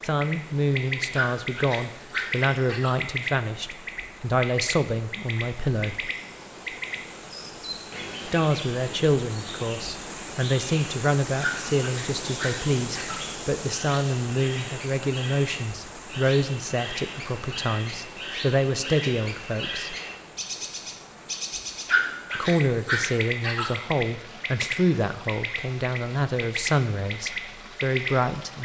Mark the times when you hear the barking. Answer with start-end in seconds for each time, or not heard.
1.1-3.0, 11.4-13.2, 21.9-23.7.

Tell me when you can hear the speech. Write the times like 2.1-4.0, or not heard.
0.0-6.1, 8.2-19.9, 22.4-28.6.